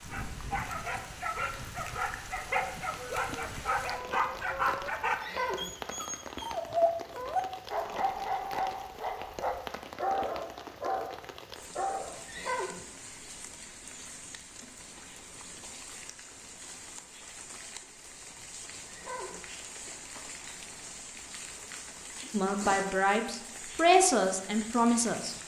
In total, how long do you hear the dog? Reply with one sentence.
The dog can be heard for 12 seconds in total.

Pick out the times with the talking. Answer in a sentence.
The talking can be heard from 22.3 to 25.4 s.